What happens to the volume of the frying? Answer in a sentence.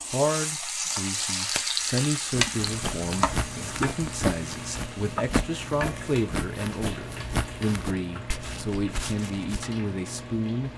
The loudness of the frying goes down.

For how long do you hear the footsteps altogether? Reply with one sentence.
The footsteps can be heard for 7 seconds in total.